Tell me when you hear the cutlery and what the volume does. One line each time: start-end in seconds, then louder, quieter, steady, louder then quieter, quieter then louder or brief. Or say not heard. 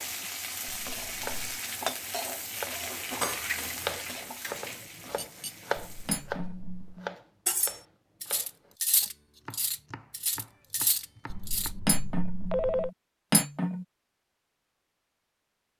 3.1-13.8 louder.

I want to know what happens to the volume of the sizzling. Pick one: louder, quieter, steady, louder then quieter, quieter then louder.
quieter.